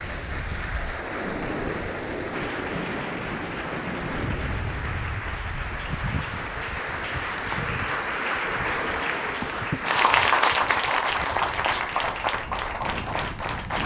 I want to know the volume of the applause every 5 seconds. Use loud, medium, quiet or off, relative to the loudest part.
medium, medium, loud.